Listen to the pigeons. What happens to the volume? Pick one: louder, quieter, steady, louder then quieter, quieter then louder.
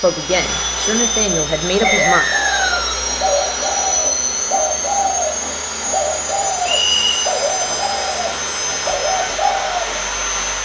steady.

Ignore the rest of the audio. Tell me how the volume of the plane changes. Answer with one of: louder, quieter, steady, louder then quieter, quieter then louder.
steady.